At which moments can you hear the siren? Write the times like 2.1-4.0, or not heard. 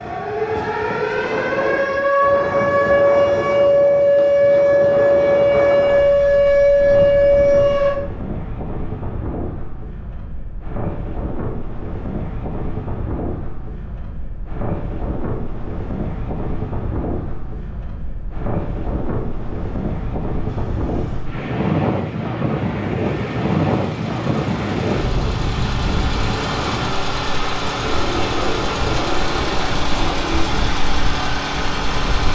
0.0-8.0.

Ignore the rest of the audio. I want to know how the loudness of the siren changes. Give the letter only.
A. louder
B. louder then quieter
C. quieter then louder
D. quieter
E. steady
A.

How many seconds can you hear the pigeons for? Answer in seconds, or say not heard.
3 s.